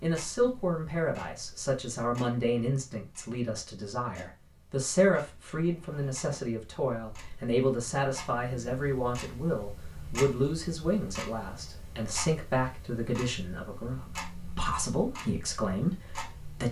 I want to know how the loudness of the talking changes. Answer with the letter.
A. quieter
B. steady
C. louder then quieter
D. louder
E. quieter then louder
B.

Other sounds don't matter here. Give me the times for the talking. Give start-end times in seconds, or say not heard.
0.0-16.6.